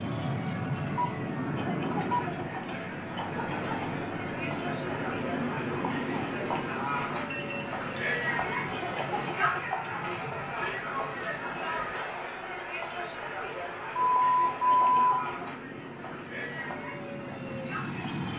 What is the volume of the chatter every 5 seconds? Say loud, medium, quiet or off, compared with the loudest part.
medium, loud, loud, medium.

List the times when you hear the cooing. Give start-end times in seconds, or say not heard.
not heard.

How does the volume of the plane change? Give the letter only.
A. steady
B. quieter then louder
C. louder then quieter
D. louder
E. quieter
B.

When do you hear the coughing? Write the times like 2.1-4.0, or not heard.
1.6-4.0, 8.7-9.9, 14.7-15.3.